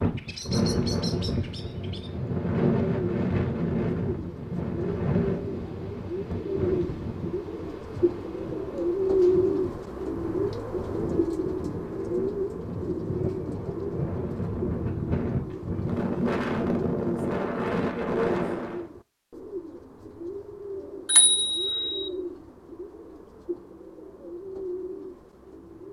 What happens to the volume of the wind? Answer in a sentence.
The volume of the wind goes down, then up.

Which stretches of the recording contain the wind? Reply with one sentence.
The wind can be heard from 0.0 to 18.9 s.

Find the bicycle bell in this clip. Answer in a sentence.
You can hear the bicycle bell from 21.1 to 22.1 s.